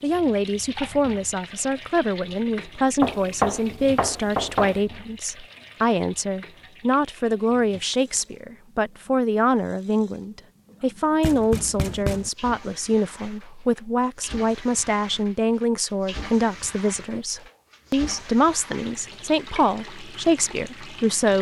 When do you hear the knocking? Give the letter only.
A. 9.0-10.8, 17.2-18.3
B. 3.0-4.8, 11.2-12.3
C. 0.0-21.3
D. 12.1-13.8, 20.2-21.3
B.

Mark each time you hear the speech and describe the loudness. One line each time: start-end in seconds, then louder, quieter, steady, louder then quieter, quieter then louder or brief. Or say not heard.
0.0-21.3 steady.